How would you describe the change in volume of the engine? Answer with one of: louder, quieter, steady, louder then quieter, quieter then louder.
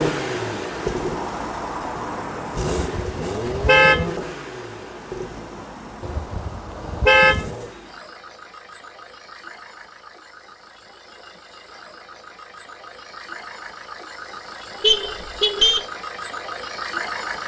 quieter then louder.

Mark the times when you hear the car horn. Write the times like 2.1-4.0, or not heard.
2.8-4.1, 6.0-7.5, 14.8-15.8.